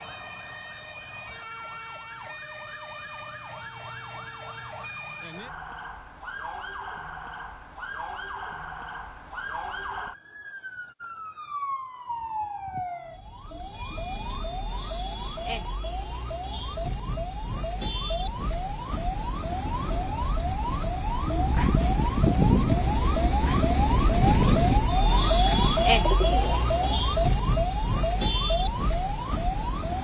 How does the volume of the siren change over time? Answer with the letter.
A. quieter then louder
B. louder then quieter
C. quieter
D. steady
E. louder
E.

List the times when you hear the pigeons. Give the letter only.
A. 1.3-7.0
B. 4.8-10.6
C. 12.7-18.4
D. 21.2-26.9
D.